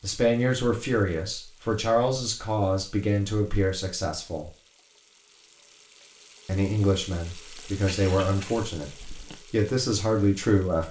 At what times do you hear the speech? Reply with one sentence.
The speech can be heard from 0.0 to 4.5 s and from 6.5 to 10.8 s.